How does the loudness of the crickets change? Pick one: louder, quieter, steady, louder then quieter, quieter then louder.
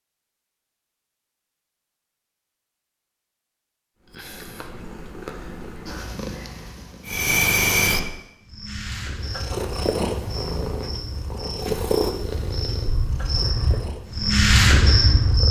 quieter then louder.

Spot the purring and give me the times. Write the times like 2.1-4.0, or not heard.
4.0-7.2, 9.2-15.4.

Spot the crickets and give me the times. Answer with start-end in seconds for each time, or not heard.
7.0-15.4.